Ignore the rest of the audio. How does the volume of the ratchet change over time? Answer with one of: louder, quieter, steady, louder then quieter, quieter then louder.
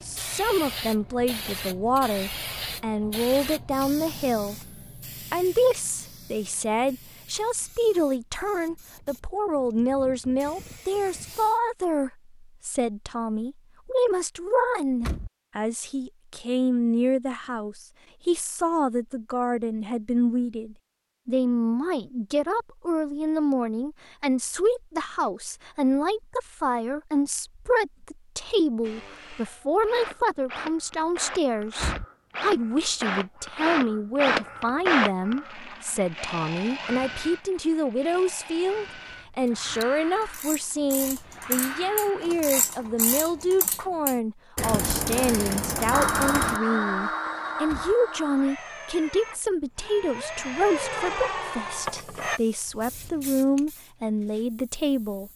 louder.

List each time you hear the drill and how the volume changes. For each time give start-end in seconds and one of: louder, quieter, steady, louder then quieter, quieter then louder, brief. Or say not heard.
28.8-42.3 louder then quieter
45.9-52.4 quieter then louder.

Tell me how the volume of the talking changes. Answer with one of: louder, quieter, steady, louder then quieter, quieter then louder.
steady.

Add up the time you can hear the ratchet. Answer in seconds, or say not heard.
7 s.